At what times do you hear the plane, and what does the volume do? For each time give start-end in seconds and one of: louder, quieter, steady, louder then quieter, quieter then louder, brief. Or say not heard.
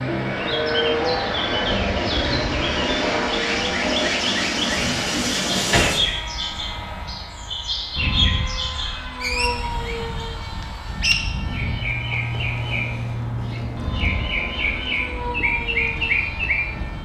0.0-17.0 quieter.